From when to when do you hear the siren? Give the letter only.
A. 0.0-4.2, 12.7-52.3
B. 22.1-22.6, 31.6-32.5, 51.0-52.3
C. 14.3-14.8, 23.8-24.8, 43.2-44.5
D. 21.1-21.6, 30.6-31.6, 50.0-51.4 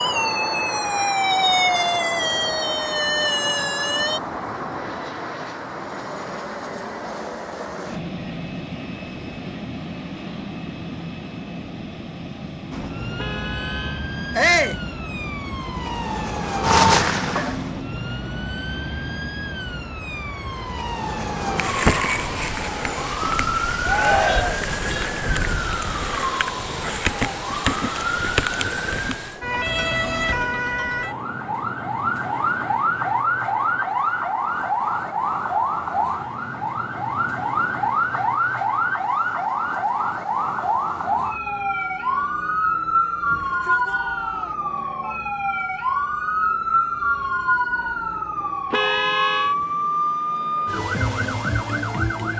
A.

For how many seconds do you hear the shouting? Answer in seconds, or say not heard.
3 s.